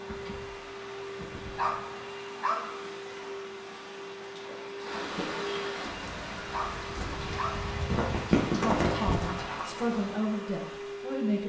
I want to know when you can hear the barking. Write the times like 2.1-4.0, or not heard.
1.6-2.9, 6.5-7.7.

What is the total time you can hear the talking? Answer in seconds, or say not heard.
3 s.